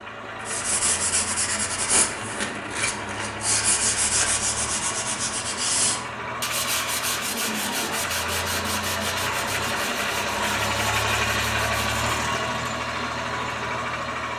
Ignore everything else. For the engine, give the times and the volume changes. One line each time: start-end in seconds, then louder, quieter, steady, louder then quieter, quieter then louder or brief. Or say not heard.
0.0-14.3 louder.